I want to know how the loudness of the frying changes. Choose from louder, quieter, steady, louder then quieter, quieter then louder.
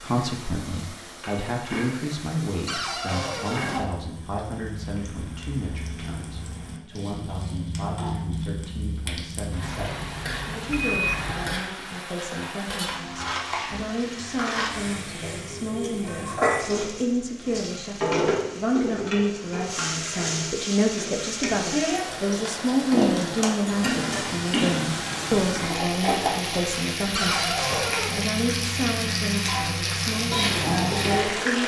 louder.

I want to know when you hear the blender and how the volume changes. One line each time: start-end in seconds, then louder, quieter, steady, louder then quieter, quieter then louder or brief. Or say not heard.
not heard.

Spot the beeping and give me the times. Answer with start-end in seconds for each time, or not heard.
9.6-11.7.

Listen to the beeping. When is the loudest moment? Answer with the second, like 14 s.
11 s.